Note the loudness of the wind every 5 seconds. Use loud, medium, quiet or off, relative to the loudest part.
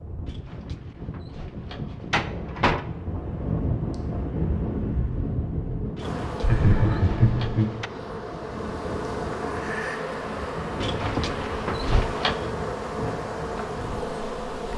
loud, loud, medium.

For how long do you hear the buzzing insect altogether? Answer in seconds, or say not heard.
9 s.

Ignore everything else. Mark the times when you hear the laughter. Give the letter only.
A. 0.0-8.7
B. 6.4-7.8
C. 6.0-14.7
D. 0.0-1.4
B.